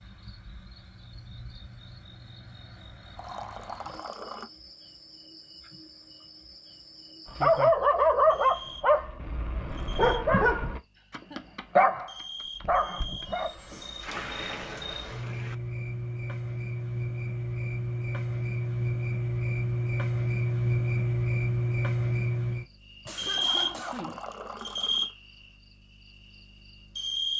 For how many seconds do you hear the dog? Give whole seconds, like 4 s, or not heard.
6 s.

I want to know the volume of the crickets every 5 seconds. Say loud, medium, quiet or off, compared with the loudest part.
quiet, quiet, quiet, loud, loud, medium.